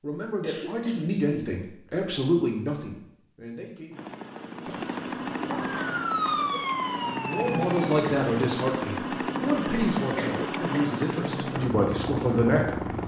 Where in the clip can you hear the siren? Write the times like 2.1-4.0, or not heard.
5.8-8.1.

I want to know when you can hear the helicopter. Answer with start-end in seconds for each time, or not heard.
3.9-13.0.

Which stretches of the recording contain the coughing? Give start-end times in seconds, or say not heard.
0.4-1.1, 4.7-6.6, 10.0-10.9.